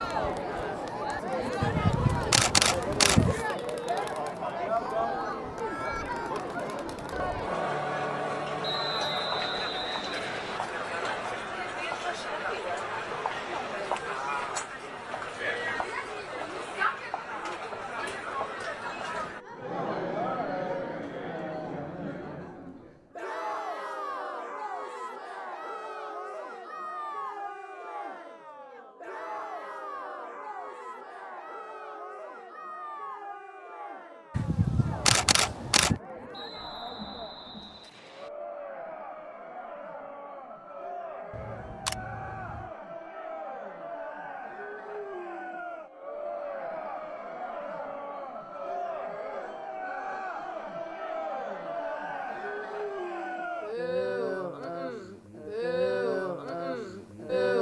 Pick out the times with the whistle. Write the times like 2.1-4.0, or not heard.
8.6-10.6, 36.3-38.3.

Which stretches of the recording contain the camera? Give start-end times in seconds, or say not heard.
1.6-3.5, 34.4-36.0, 41.3-42.7.